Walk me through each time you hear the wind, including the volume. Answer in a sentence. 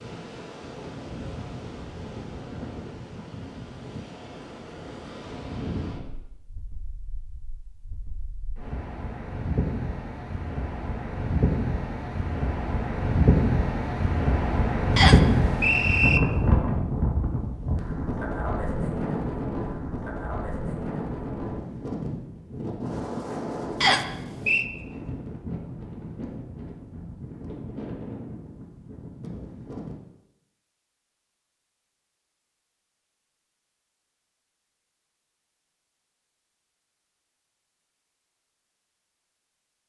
You can hear the wind from 0.0 to 30.0 s, getting louder then quieter.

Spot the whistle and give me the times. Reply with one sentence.
You can hear the whistle from 14.9 to 16.2 s and from 23.8 to 24.6 s.